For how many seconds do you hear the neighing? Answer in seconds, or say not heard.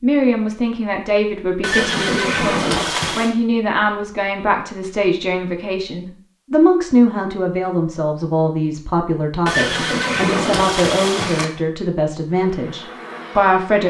4 s.